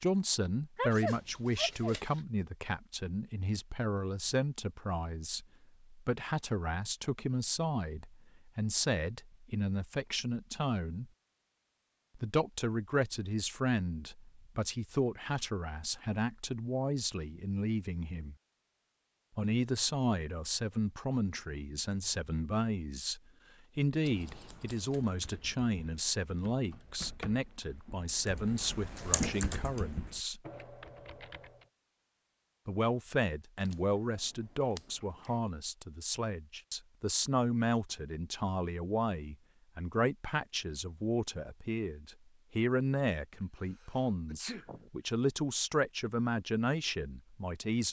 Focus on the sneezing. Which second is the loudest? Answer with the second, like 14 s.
1 s.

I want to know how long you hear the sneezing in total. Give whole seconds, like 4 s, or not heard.
3 s.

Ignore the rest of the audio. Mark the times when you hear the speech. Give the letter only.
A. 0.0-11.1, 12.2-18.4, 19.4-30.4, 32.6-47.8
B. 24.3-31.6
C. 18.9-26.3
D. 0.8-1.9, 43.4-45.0
A.